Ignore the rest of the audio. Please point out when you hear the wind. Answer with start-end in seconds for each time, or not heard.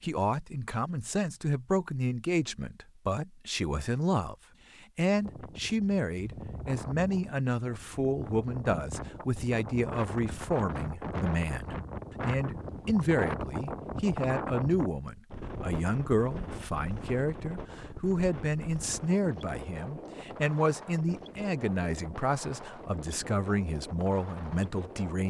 5.2-25.2.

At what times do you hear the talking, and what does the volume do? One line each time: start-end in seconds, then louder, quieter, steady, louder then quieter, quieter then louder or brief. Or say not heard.
0.0-25.2 steady.